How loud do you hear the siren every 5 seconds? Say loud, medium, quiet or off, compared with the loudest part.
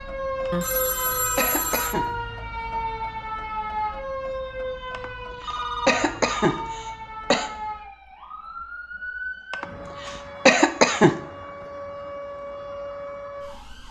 loud, medium, medium.